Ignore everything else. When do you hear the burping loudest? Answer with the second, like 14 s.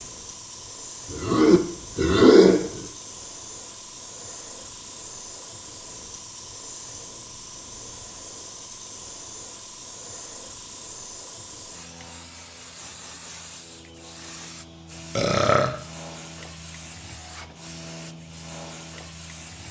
2 s.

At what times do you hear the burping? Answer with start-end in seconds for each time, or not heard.
1.1-2.9, 15.2-15.8.